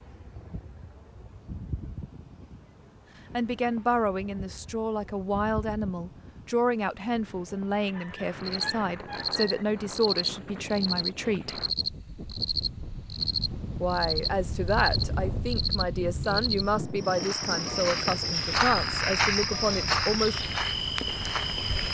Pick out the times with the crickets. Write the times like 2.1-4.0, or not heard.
8.4-21.9.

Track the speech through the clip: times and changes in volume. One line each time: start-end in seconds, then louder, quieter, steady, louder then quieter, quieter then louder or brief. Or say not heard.
3.3-11.6 steady
13.8-20.4 steady.